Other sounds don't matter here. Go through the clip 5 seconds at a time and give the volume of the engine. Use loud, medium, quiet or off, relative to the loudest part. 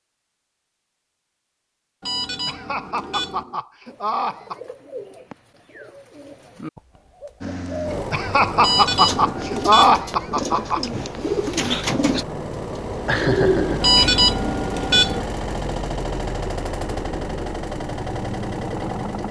off, loud, loud, loud.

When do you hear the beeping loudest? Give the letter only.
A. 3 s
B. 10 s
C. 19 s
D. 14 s
D.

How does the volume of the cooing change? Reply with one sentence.
The volume of the cooing goes up.